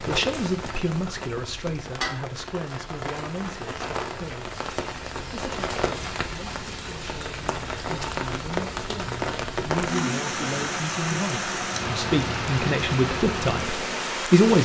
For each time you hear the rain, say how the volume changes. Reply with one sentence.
You can hear the rain from 0.0 to 14.5 s, getting louder.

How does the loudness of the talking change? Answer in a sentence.
The loudness of the talking goes down, then up.